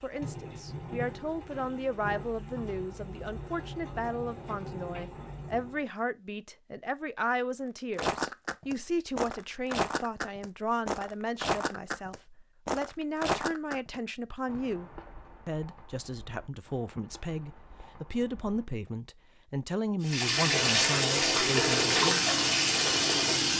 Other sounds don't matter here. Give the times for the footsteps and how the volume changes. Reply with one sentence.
The footsteps can be heard from 8.0 to 18.6 s, getting quieter.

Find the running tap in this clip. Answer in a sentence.
You can hear the running tap from 0.0 to 5.8 s and from 20.1 to 23.5 s.